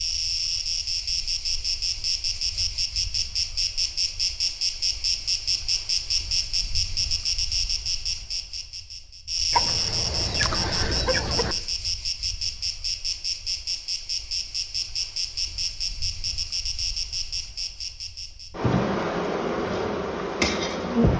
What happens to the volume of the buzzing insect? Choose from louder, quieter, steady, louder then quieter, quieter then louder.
steady.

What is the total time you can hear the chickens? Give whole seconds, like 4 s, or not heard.
2 s.